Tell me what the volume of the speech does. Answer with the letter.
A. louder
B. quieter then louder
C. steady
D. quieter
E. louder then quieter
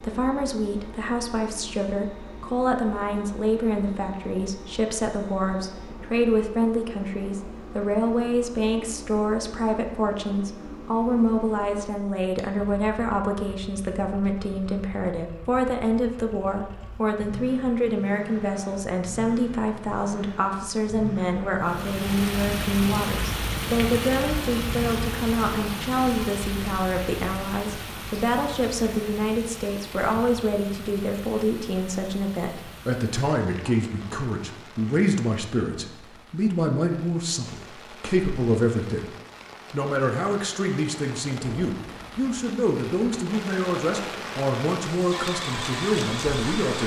C.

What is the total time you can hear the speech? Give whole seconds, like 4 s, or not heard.
46 s.